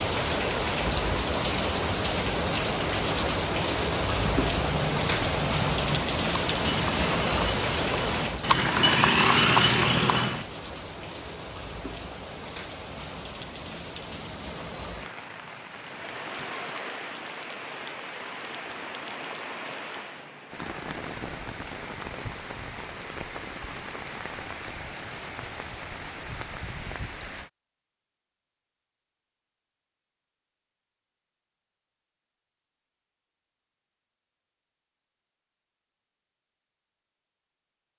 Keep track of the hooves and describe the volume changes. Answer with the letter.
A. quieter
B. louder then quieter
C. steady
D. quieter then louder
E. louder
E.